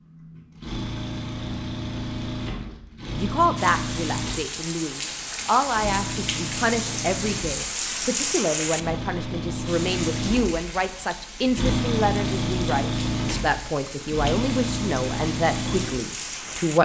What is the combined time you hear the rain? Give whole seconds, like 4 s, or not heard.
13 s.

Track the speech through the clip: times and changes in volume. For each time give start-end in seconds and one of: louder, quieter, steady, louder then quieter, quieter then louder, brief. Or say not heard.
3.1-16.8 steady.